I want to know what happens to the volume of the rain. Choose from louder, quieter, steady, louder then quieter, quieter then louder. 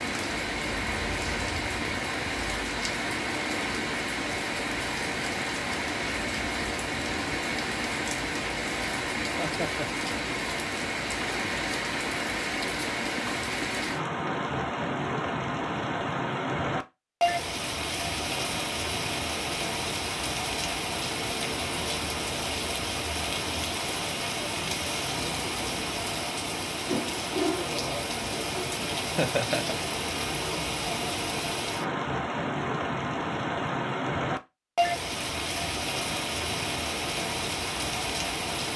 steady.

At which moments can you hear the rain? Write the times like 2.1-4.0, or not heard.
0.0-38.7.